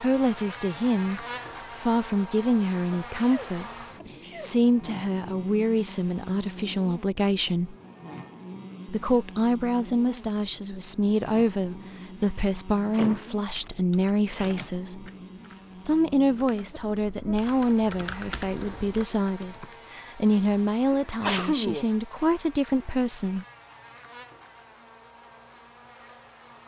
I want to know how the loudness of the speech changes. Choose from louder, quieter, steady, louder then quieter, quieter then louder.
steady.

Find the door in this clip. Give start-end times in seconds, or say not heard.
12.9-13.7.